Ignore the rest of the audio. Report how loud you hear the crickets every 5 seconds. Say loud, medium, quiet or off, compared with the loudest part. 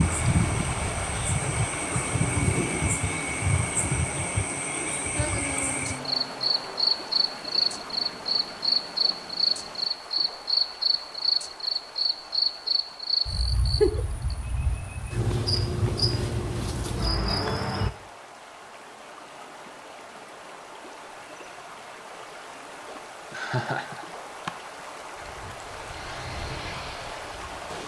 loud, loud, loud, loud, off, off.